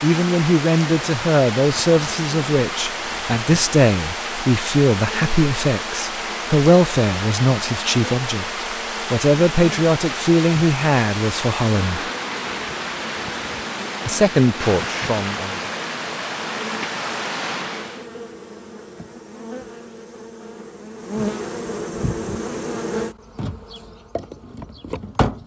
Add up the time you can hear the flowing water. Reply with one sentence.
The flowing water can be heard for 18 seconds in total.